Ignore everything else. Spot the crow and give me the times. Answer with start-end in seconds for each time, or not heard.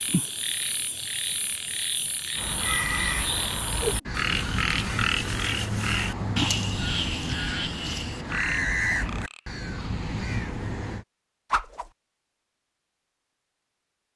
2.4-11.1.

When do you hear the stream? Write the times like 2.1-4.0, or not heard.
not heard.